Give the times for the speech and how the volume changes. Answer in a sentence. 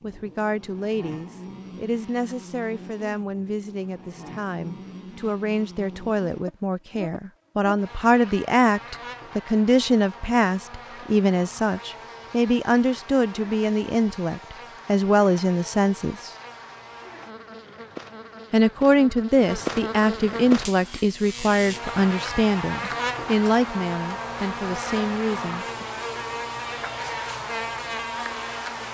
You can hear the speech from 0.0 to 16.3 s, getting louder; and from 18.5 to 25.9 s, getting quieter.